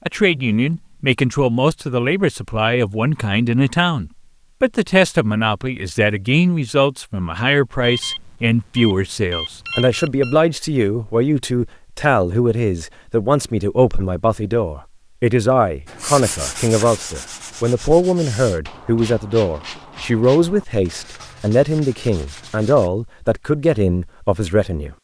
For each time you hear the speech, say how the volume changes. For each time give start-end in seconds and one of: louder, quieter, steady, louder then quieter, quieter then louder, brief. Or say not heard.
0.1-24.9 steady.